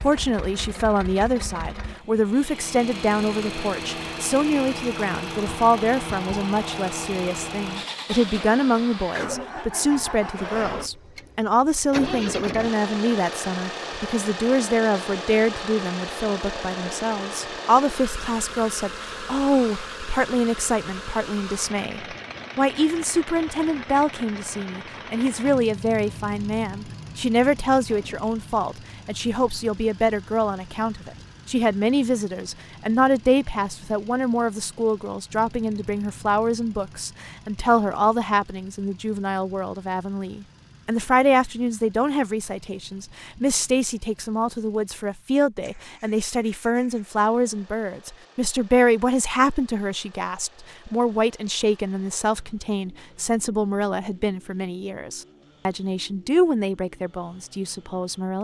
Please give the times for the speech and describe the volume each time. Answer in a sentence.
You can hear the speech from 0.0 to 58.4 s, at a steady volume.